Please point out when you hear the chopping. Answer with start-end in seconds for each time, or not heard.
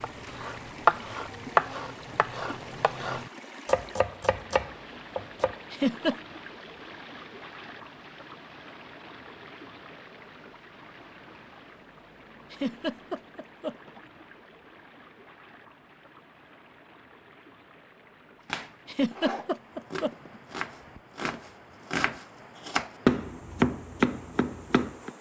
0.0-5.5, 18.4-25.1.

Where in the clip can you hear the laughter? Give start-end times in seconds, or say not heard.
5.7-6.2, 12.5-14.0, 18.9-20.3.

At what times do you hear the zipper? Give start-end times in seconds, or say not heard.
not heard.